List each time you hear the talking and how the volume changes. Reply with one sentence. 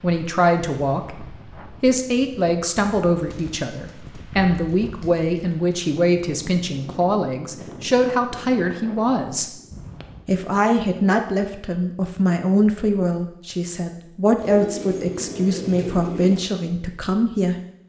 You can hear the talking from 0.0 to 9.5 s, at a steady volume; and from 10.2 to 17.6 s, at a steady volume.